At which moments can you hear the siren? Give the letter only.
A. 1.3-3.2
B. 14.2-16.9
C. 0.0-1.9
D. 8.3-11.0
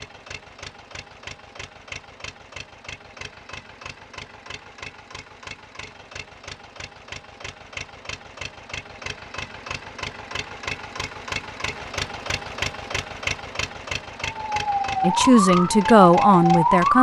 B.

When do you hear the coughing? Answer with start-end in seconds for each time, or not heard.
not heard.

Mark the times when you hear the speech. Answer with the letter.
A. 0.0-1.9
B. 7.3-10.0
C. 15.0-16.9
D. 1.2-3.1
C.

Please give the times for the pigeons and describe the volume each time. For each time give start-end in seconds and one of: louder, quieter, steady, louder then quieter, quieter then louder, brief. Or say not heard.
not heard.